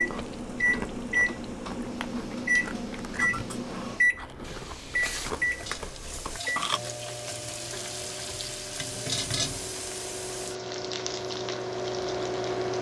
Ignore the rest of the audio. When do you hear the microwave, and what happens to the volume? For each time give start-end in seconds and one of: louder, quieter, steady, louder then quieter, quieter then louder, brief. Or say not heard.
0.0-12.7 quieter then louder.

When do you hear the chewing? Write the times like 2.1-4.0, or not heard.
0.0-6.8.